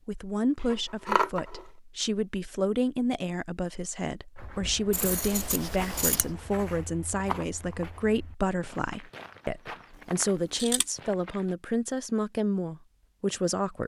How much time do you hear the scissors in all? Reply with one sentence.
The scissors can be heard for 3 seconds in total.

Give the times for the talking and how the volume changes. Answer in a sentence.
You can hear the talking from 0.1 to 13.8 s, at a steady volume.